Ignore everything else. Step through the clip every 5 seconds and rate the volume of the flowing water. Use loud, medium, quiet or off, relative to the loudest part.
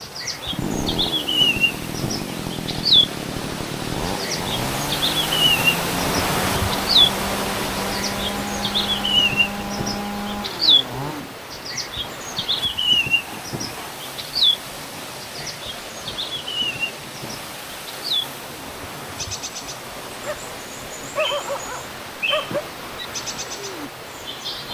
medium, loud, medium, medium, medium.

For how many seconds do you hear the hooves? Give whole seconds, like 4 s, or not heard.
not heard.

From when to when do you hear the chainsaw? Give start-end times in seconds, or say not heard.
0.3-11.2.